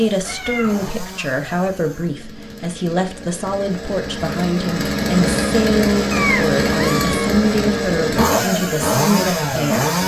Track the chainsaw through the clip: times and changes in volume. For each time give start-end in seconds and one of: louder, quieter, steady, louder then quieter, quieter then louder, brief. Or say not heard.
0.0-10.0 louder.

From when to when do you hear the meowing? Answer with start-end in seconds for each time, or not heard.
0.2-0.9, 6.1-7.3.